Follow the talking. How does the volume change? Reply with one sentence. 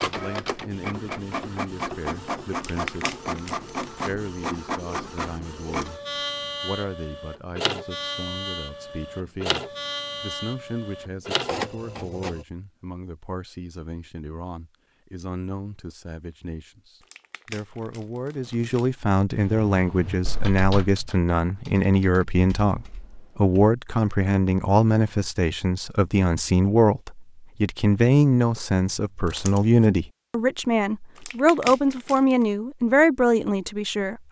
The volume of the talking goes up.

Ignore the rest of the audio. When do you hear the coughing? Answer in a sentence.
The coughing can't be heard in this clip.